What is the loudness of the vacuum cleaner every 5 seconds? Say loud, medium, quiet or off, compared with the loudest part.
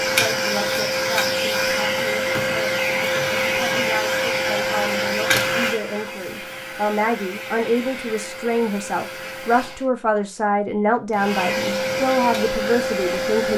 loud, medium, loud.